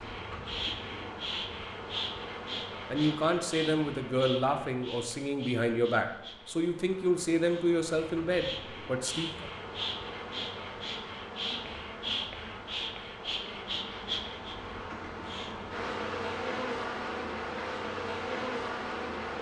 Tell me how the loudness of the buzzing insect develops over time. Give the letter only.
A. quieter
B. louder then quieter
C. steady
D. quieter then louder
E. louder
D.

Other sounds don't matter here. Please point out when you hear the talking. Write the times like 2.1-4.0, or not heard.
2.9-9.5.